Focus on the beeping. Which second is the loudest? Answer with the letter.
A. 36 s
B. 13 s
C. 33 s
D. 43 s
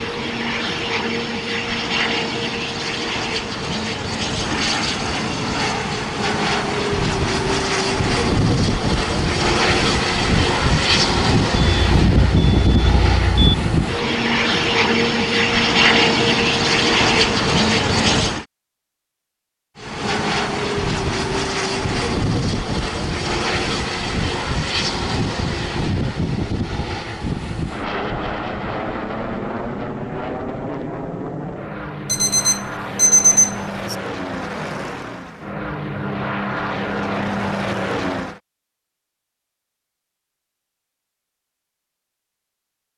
C.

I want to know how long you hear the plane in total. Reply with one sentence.
You can hear the plane for 37 seconds altogether.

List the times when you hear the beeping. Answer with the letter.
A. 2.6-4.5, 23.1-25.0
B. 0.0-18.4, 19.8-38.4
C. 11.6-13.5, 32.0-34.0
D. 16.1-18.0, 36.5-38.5
C.